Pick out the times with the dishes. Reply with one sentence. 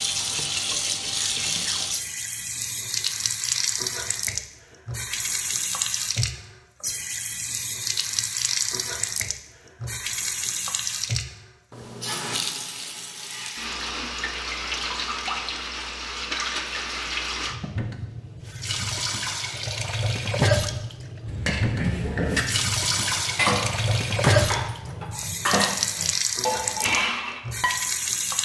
You can hear the dishes from 21.2 to 27.8 s.